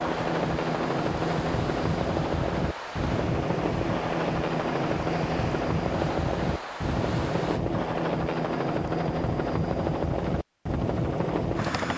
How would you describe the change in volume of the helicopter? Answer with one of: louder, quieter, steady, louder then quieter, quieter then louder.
steady.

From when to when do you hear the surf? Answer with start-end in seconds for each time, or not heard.
0.0-7.6.